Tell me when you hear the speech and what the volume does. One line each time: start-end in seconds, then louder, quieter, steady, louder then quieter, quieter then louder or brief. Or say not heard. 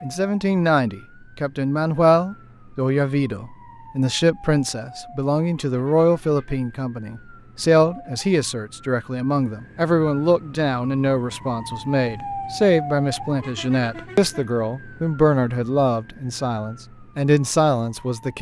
0.0-18.3 steady.